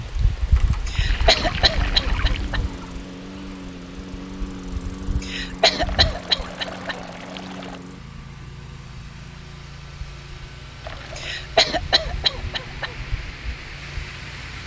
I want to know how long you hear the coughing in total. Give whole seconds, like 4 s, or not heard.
5 s.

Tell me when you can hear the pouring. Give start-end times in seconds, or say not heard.
1.1-3.0, 5.8-7.8, 10.8-11.4.